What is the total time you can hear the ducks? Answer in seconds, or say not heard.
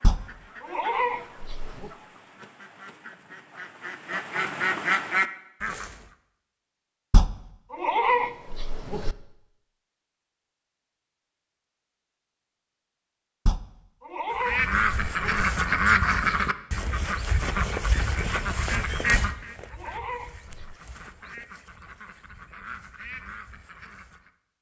16 s.